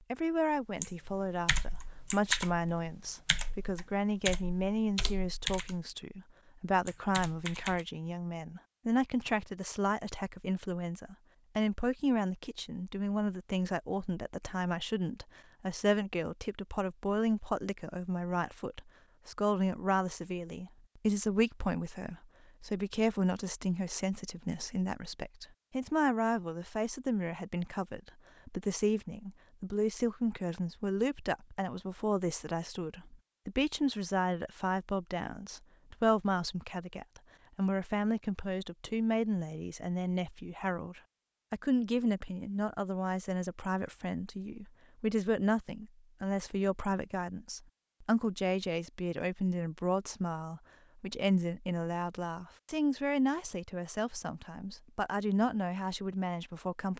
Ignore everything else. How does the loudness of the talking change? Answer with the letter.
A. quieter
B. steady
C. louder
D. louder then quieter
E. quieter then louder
B.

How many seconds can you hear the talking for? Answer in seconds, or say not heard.
57 s.